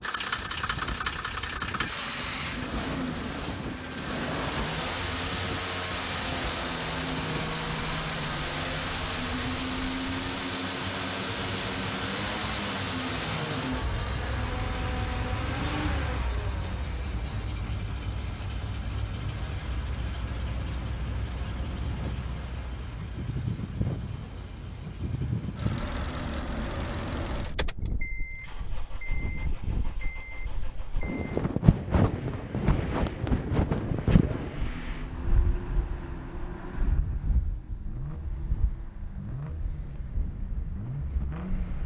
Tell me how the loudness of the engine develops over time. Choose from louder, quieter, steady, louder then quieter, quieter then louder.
quieter.